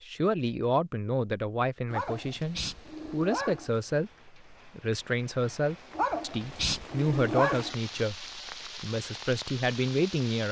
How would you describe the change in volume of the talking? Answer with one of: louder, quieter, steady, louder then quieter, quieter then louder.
steady.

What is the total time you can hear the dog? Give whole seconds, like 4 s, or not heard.
4 s.